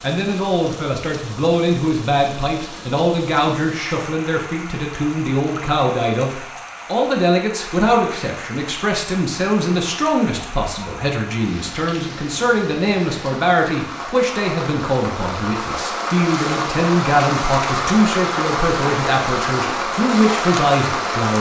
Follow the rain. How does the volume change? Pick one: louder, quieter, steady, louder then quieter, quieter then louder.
louder.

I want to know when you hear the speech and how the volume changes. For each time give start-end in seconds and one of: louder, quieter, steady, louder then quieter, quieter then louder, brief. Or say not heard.
0.0-21.3 steady.